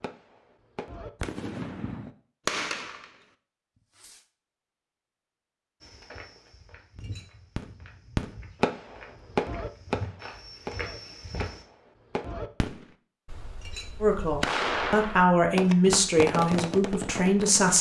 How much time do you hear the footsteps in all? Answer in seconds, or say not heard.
6 s.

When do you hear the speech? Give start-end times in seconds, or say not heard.
14.0-17.7.